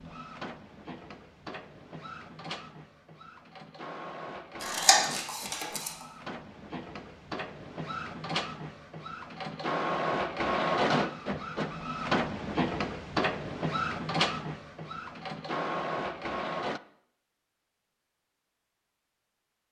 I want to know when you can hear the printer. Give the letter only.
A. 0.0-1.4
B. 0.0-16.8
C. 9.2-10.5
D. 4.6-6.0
B.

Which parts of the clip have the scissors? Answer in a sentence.
You can hear the scissors from 4.6 to 6.0 s.